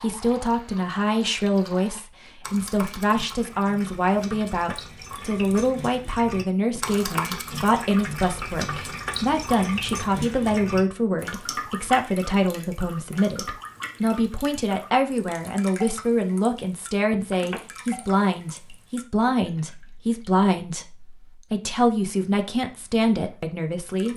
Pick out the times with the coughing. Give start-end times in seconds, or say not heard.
not heard.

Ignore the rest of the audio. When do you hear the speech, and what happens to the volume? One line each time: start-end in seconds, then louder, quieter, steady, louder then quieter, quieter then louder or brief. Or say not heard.
0.0-24.1 steady.